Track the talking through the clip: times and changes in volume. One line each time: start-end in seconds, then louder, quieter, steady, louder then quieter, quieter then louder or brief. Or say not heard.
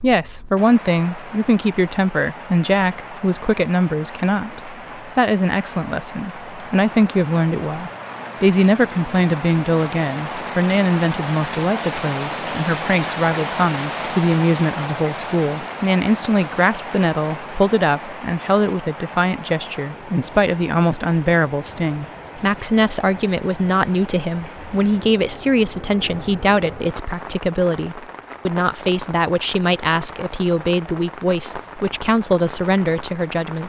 0.0-33.6 steady.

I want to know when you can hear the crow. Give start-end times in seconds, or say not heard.
not heard.